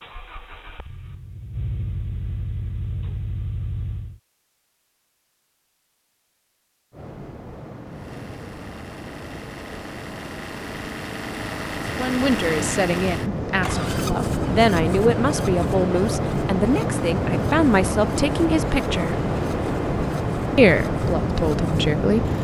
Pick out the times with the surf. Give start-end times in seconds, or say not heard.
6.9-22.4.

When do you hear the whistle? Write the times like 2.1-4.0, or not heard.
not heard.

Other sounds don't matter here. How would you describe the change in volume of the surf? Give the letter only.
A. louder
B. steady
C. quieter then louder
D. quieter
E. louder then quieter
A.